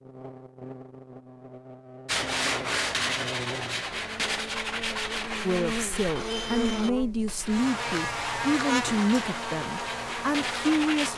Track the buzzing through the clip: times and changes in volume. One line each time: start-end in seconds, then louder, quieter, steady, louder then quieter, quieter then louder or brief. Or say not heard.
0.0-11.1 louder.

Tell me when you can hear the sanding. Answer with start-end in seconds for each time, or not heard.
2.0-11.1.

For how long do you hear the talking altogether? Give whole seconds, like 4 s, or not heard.
6 s.